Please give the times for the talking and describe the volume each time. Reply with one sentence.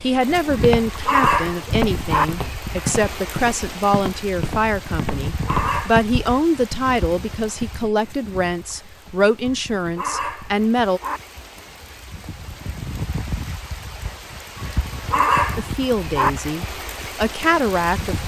You can hear the talking from 0.0 to 11.0 s, at a steady volume; and briefly from 15.6 to 18.2 s.